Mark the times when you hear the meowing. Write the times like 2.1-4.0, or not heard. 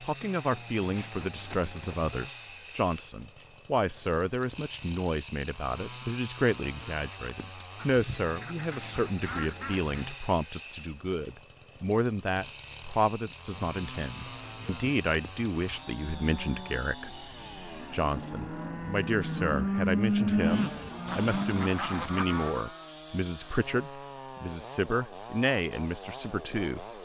not heard.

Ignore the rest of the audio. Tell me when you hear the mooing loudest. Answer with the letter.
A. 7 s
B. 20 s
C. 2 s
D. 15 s
B.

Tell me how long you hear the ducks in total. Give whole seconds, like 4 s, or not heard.
4 s.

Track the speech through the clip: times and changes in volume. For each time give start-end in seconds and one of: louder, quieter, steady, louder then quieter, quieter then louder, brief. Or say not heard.
0.0-26.9 steady.